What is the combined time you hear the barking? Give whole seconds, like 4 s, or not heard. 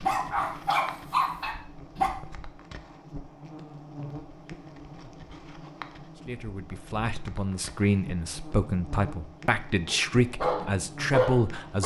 4 s.